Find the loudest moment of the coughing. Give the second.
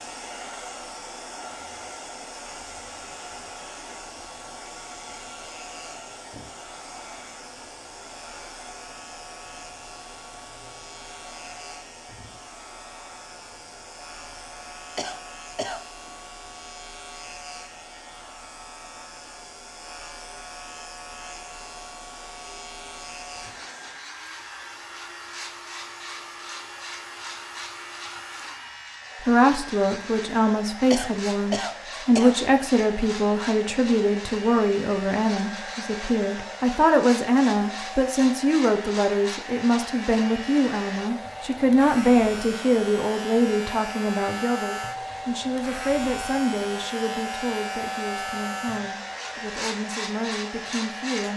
32 s.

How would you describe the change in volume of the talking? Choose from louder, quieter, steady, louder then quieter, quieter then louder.
quieter.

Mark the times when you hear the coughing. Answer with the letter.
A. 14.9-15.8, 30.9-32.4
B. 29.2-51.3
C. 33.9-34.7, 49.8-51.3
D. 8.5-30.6
A.